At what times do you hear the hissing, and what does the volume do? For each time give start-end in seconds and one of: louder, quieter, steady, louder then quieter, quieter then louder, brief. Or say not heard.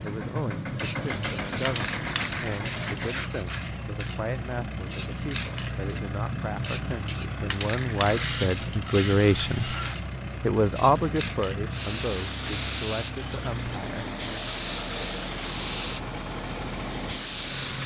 0.0-17.8 steady.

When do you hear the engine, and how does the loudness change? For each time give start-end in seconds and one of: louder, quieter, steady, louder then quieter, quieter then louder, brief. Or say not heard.
0.0-17.8 steady.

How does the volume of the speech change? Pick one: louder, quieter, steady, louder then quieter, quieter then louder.
louder then quieter.